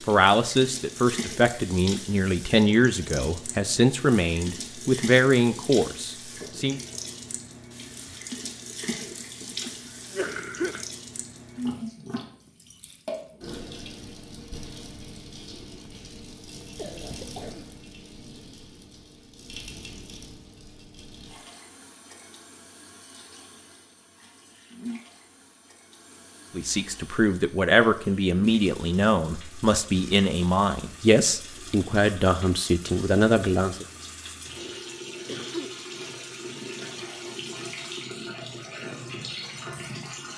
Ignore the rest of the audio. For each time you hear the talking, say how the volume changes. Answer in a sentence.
The talking can be heard from 0.1 to 6.8 s, at a steady volume; and from 26.6 to 33.9 s, at a steady volume.